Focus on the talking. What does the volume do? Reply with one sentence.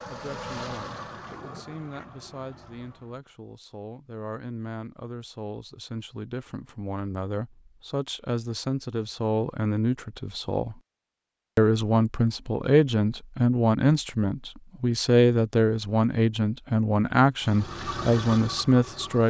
The volume of the talking goes up.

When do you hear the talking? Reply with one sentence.
The talking can be heard from 0.1 to 10.8 s and from 11.6 to 19.2 s.